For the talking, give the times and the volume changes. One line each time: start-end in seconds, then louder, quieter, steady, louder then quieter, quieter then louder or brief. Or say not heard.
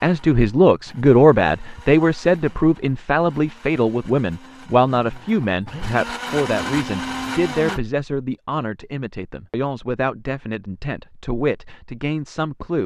0.0-12.8 quieter.